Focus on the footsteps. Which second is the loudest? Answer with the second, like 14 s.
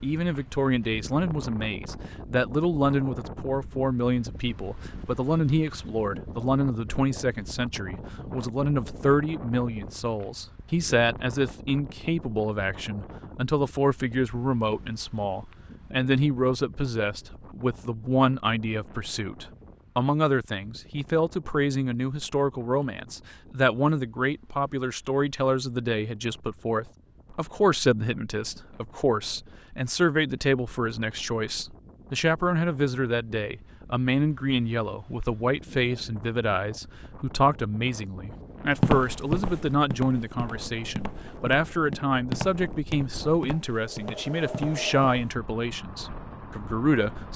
39 s.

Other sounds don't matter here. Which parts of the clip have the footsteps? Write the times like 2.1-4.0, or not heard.
38.8-45.4.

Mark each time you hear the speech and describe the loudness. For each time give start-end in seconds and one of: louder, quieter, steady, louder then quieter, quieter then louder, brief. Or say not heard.
0.0-47.3 steady.